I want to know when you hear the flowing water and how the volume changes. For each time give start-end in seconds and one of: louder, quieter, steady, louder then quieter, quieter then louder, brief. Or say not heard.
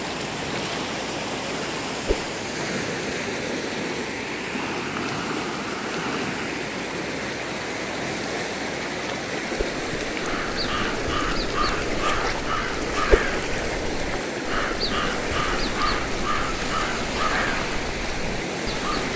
0.0-19.1 steady.